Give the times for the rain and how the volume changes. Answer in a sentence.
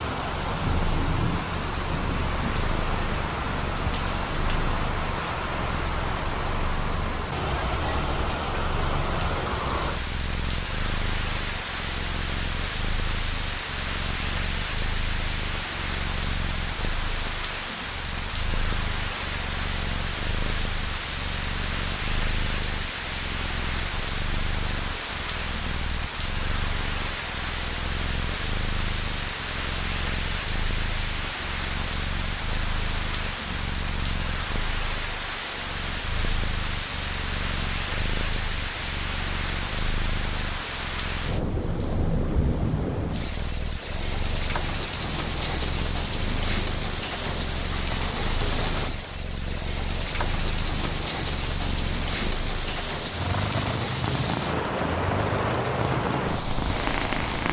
You can hear the rain from 0.0 to 57.4 s, at a steady volume.